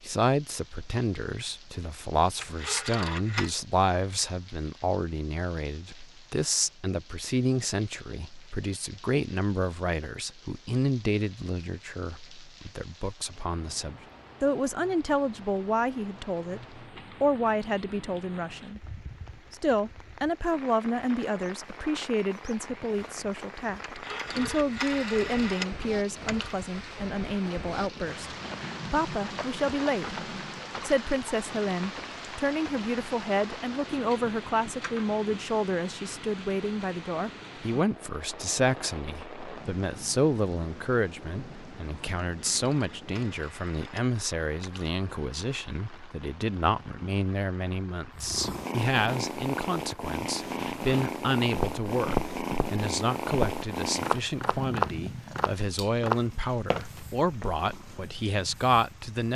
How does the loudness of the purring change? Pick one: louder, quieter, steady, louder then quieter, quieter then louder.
quieter.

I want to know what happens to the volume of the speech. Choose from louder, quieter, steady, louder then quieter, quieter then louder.
steady.